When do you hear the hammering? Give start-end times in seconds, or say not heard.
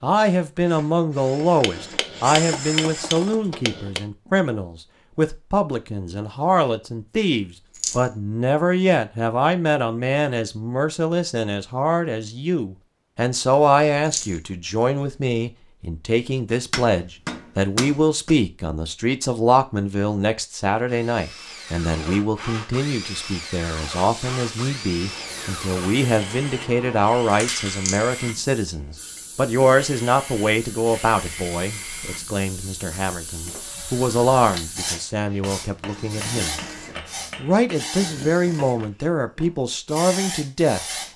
1.6-4.0, 16.7-18.4, 35.4-37.9.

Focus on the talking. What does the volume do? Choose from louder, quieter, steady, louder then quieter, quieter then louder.
steady.